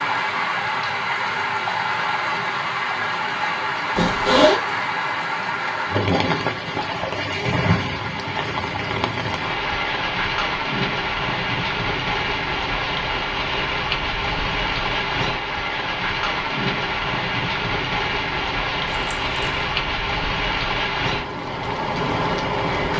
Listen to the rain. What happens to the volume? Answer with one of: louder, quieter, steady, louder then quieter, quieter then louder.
steady.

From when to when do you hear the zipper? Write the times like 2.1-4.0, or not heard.
4.0-4.6, 18.9-19.7.